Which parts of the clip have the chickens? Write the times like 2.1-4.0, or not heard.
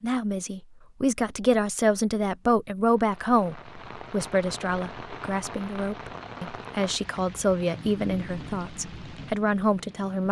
not heard.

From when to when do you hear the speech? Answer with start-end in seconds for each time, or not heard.
0.0-10.2.